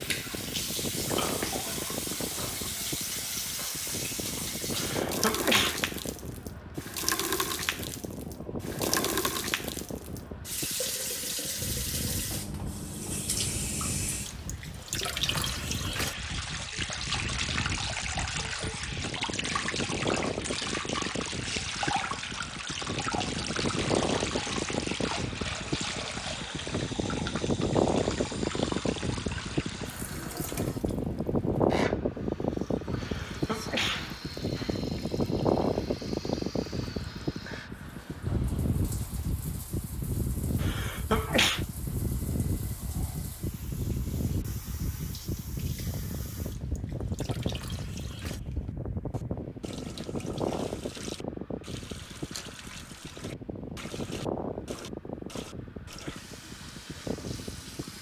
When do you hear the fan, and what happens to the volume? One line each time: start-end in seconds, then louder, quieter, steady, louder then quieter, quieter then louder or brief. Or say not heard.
0.0-57.9 louder then quieter.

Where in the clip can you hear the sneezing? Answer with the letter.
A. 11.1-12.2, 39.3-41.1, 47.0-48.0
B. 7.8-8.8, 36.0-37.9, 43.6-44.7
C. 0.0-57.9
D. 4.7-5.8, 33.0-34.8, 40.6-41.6
D.